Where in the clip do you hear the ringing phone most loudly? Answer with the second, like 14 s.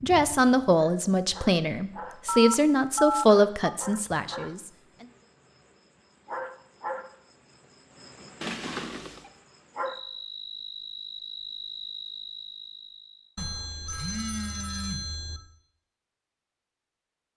3 s.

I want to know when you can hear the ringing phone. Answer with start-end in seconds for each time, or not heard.
2.2-3.8, 8.4-9.3, 13.3-15.4.